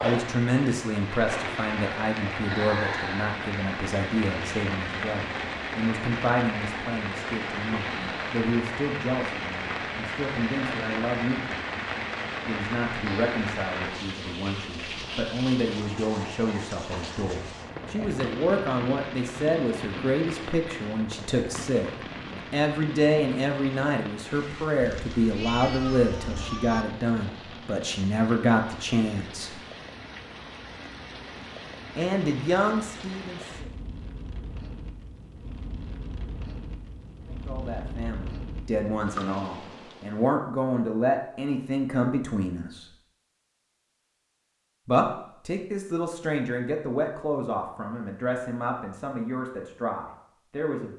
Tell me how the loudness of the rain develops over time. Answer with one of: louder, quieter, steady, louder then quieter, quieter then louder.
quieter.